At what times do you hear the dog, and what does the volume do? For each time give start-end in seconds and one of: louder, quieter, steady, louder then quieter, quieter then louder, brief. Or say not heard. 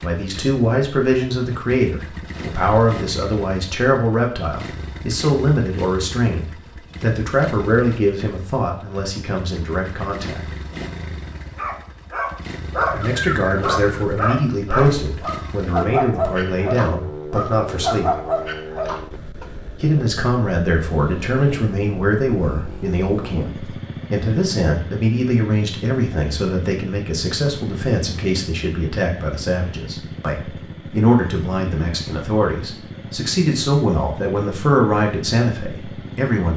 11.6-19.4 steady.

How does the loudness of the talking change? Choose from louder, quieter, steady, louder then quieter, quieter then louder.
steady.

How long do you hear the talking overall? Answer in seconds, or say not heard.
32 s.